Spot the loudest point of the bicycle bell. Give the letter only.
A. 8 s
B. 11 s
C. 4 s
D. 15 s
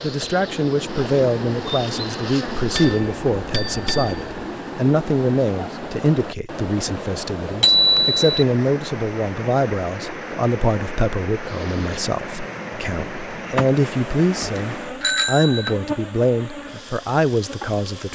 A.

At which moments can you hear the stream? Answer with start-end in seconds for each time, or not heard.
0.0-15.1.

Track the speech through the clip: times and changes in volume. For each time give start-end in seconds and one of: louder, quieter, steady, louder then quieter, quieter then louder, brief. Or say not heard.
0.0-18.1 steady.